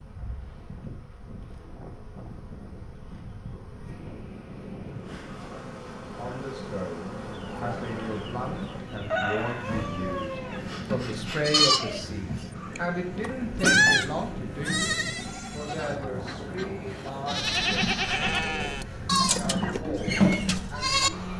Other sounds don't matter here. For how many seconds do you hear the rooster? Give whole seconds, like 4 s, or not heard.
3 s.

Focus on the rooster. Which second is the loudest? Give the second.
9 s.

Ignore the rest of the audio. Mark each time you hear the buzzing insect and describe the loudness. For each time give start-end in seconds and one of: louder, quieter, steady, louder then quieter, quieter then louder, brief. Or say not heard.
0.0-21.3 louder.